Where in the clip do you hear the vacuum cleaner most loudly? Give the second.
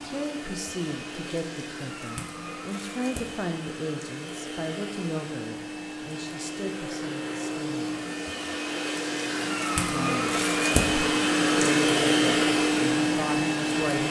12 s.